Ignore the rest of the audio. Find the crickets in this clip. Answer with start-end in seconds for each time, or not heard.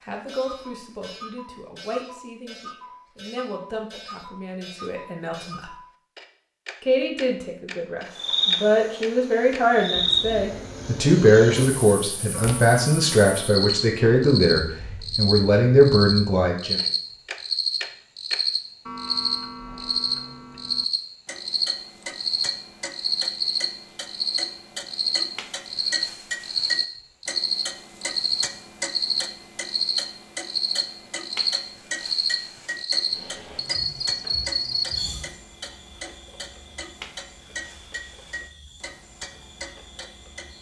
8.1-40.5.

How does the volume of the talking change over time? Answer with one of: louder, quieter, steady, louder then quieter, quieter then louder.
louder.